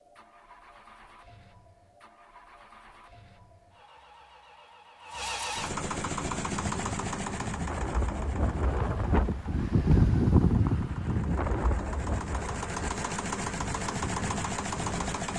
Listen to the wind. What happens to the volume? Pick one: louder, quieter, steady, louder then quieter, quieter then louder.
louder then quieter.